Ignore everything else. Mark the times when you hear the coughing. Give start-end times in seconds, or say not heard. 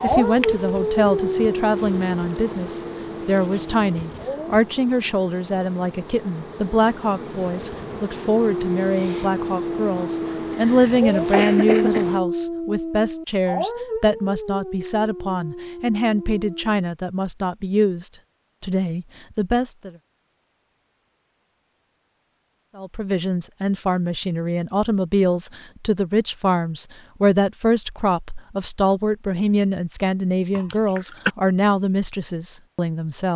10.5-12.1, 30.6-31.3.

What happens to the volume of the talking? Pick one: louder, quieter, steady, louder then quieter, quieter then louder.
steady.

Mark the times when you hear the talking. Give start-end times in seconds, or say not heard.
0.0-19.9, 22.8-33.3.